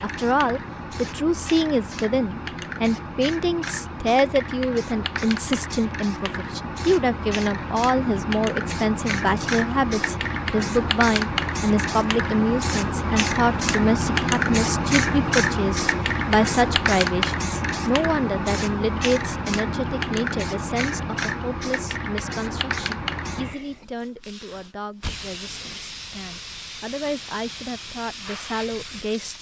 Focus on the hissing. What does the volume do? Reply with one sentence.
The volume of the hissing goes up, then down.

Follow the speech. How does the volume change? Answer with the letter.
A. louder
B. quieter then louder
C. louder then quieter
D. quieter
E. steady
D.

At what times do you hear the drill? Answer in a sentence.
You can't hear the drill here.